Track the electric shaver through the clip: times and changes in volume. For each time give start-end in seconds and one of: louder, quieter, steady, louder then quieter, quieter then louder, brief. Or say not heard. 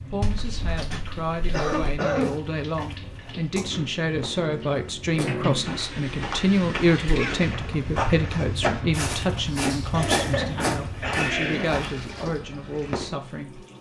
not heard.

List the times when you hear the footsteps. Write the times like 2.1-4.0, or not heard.
2.0-13.2.